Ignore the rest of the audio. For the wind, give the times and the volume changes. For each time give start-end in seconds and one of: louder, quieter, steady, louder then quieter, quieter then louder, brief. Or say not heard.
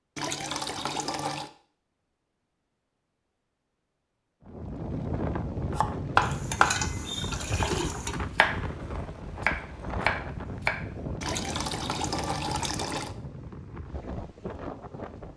4.5-15.3 quieter.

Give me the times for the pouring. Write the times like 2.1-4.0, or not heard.
0.1-1.5, 6.2-8.2, 11.2-13.2.